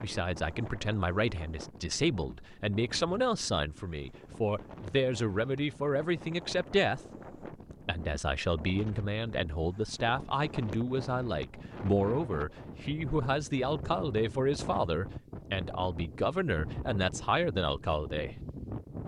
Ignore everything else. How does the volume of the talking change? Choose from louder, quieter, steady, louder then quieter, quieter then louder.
steady.